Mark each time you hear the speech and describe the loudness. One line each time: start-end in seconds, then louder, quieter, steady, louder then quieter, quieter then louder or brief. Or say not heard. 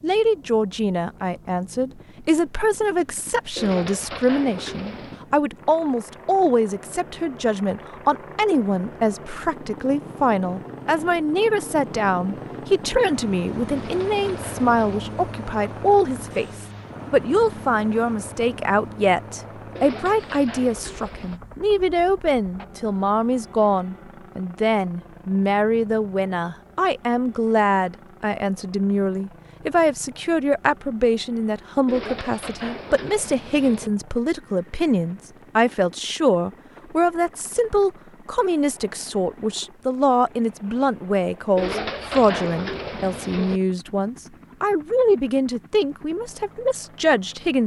0.0-47.6 steady.